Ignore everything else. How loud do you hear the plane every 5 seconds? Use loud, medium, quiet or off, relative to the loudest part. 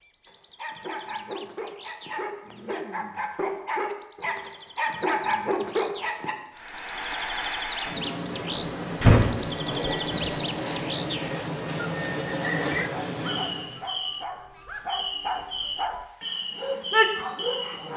off, loud, loud, off.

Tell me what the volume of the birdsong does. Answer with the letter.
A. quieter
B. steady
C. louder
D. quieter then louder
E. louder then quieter
C.